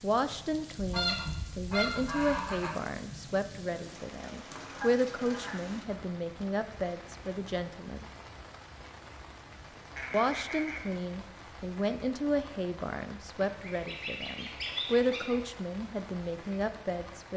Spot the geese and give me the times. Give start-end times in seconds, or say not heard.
0.8-2.8, 4.5-6.0, 9.9-10.9, 13.6-15.4.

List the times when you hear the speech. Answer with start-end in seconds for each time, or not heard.
0.0-8.1, 10.1-17.3.